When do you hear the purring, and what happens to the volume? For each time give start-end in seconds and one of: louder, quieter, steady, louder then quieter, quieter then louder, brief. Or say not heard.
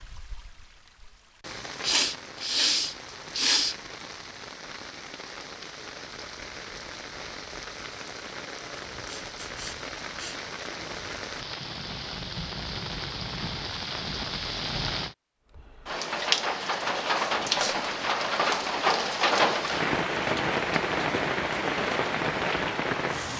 not heard.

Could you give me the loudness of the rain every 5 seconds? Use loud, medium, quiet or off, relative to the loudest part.
quiet, quiet, medium, loud, loud.